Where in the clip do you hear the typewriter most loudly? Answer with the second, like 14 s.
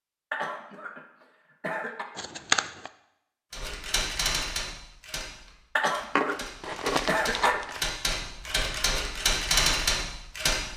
10 s.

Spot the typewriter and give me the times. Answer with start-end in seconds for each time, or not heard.
3.5-10.7.